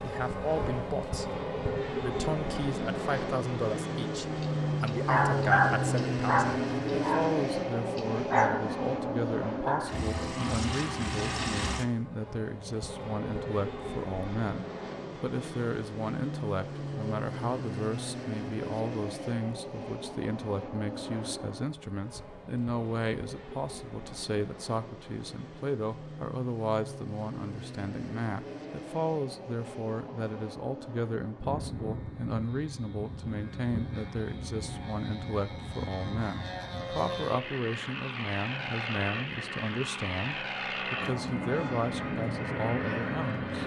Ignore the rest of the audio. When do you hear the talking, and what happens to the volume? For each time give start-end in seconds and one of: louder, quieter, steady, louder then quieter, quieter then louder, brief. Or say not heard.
0.0-1.3 brief
2.0-43.6 steady.